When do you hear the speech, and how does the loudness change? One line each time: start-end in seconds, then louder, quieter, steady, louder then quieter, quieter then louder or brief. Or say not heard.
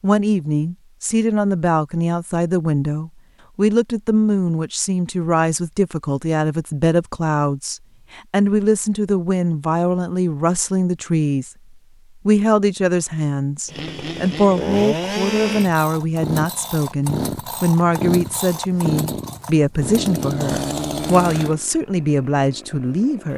0.0-11.5 steady
12.2-23.3 steady.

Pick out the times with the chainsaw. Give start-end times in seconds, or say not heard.
13.7-23.3.